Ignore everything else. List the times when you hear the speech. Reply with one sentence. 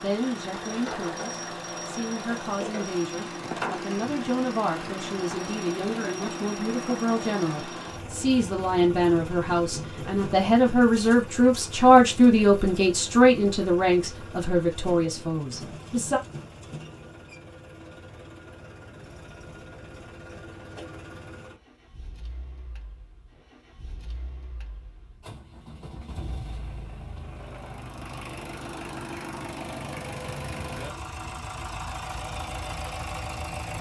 The speech can be heard from 0.0 to 16.2 s.